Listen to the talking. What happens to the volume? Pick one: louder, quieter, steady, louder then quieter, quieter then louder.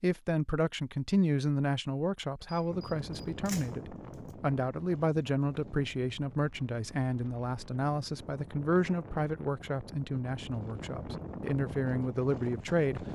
steady.